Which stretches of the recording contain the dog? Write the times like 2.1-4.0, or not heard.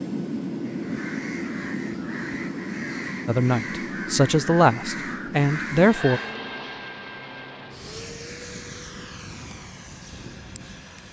not heard.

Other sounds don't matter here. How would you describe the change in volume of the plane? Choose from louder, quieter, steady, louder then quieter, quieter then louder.
quieter.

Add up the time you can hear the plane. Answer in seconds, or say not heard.
11 s.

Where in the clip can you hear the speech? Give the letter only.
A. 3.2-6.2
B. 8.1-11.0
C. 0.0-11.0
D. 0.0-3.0
A.